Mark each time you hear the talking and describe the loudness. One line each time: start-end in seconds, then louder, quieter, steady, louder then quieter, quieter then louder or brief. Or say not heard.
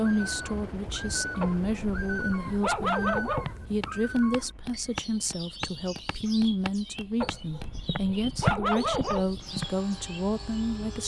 0.0-11.0 steady.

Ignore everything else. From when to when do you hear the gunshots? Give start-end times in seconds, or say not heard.
not heard.